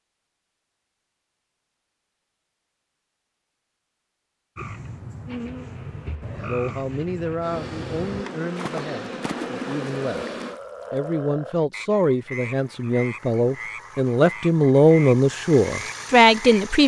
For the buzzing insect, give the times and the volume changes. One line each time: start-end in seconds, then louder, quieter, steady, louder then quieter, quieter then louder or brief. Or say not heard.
5.2-10.6 louder.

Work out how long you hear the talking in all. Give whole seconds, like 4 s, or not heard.
10 s.